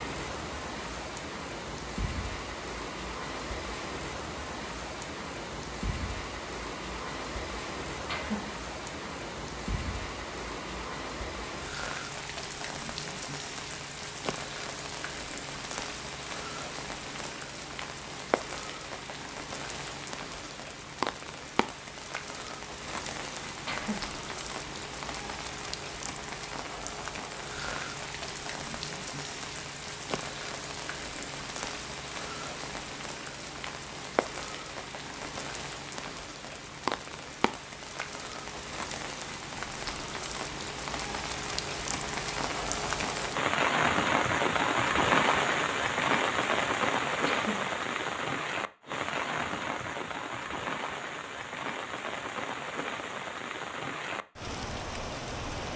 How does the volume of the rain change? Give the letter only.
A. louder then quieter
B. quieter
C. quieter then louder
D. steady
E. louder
E.